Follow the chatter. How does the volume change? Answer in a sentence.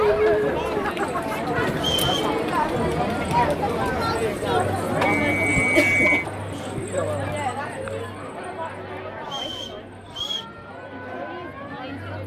The volume of the chatter goes down.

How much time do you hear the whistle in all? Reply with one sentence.
The whistle can be heard for 3 seconds in total.